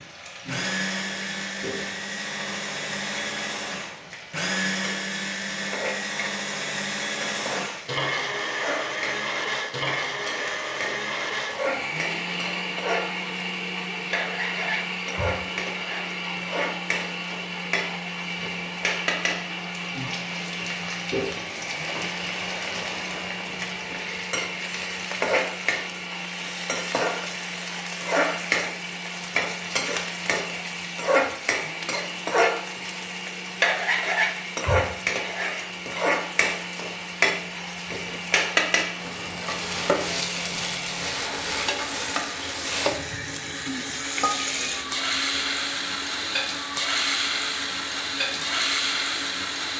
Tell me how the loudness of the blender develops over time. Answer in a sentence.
The loudness of the blender goes down.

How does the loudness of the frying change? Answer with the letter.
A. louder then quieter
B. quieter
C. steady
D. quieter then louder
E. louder
E.